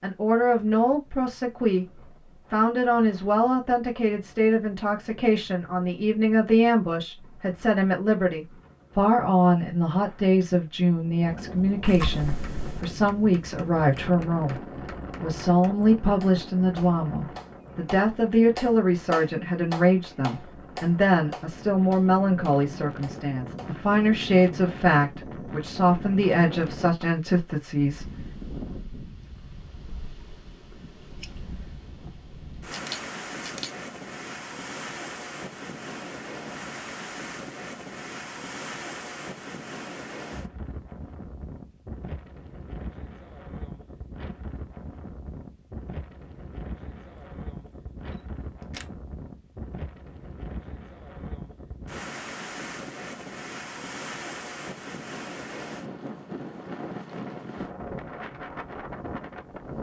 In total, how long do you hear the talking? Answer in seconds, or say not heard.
28 s.